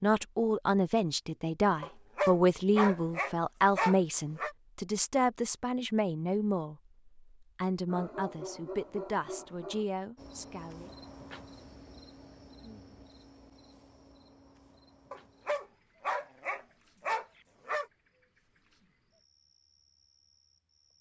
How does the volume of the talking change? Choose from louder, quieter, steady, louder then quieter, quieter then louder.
quieter.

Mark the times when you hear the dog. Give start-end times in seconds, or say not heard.
1.8-4.5, 7.8-9.8, 15.1-17.9.